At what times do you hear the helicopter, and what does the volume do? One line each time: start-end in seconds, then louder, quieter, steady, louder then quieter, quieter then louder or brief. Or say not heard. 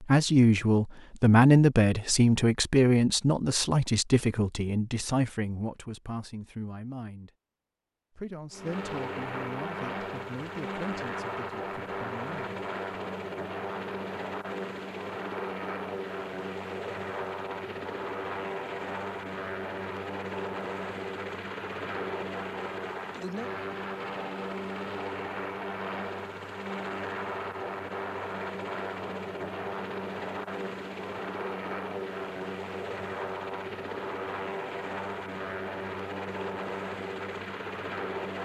8.5-38.4 steady.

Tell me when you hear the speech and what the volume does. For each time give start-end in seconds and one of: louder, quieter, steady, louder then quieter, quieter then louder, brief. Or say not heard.
0.0-7.3 quieter
8.2-12.6 quieter.